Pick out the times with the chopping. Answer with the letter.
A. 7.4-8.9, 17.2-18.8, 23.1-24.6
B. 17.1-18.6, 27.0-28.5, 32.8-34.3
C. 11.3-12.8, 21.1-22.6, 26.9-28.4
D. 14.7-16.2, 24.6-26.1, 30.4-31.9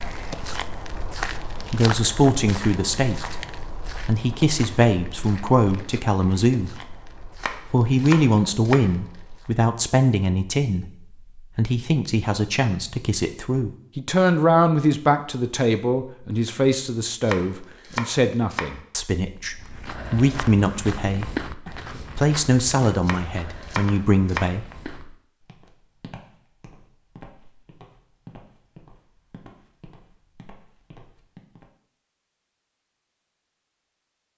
A.